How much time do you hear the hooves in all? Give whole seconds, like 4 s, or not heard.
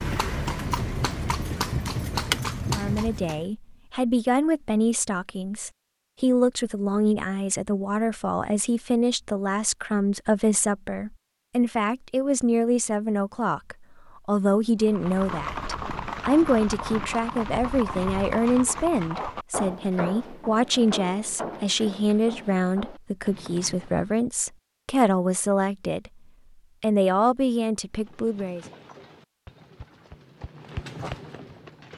17 s.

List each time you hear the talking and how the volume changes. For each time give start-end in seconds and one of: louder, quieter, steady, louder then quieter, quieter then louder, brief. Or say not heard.
2.7-26.1 steady
26.8-28.6 brief.